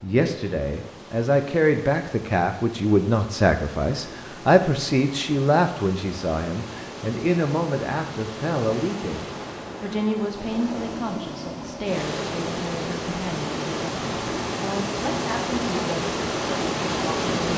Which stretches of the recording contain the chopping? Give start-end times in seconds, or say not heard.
not heard.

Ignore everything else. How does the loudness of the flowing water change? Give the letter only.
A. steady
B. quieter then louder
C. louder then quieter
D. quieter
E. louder
E.